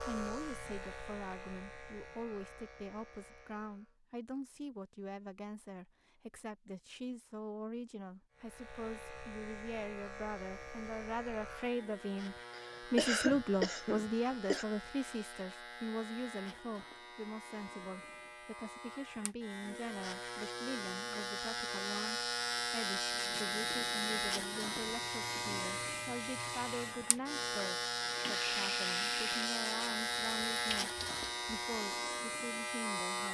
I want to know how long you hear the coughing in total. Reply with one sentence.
The coughing can be heard for 2 seconds in total.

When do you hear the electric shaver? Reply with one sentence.
You can hear the electric shaver from 0.0 to 4.0 s and from 8.3 to 33.2 s.